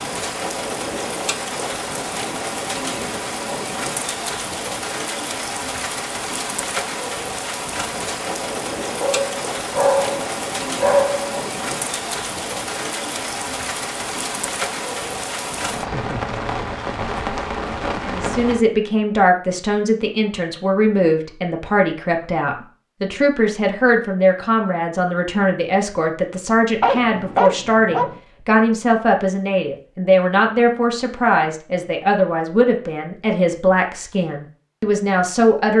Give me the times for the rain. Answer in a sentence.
The rain can be heard from 0.0 to 18.6 s.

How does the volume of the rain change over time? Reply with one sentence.
The loudness of the rain stays about the same.